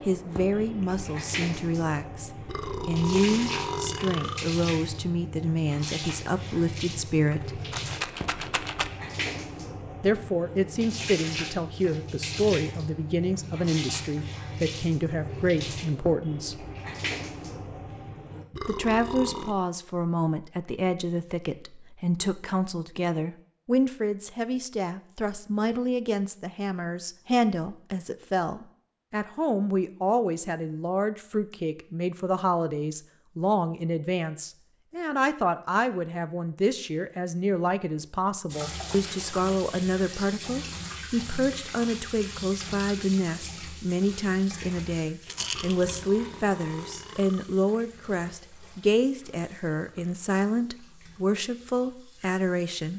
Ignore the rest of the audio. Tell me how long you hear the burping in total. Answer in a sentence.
The burping can be heard for 5 seconds in total.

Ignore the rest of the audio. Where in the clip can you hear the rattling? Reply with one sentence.
You can hear the rattling from 7.2 to 8.9 s and from 45.2 to 46.0 s.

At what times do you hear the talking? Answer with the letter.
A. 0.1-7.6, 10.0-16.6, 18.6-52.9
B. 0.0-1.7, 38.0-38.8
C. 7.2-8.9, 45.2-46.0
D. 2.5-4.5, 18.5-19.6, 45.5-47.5
A.